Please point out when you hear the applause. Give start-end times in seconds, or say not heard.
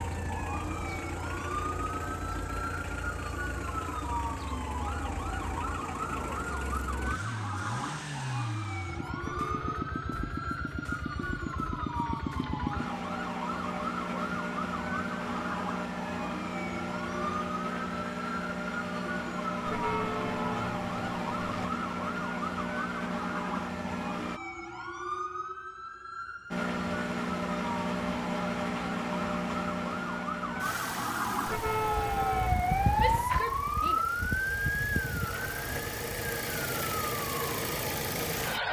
not heard.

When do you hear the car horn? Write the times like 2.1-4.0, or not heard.
9.2-9.9, 19.6-21.7, 31.4-33.3.